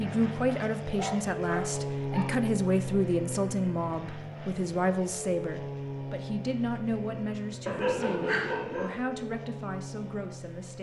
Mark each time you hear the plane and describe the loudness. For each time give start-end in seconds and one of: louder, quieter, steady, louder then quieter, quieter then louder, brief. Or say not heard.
0.0-10.7 quieter.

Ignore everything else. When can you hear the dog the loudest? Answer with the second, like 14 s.
8 s.